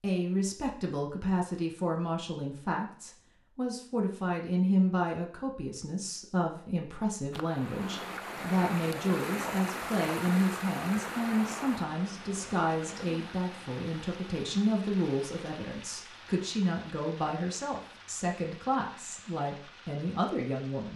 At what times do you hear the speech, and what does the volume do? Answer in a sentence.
You can hear the speech from 0.0 to 20.9 s, at a steady volume.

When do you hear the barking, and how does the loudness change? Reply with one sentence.
You can't hear the barking here.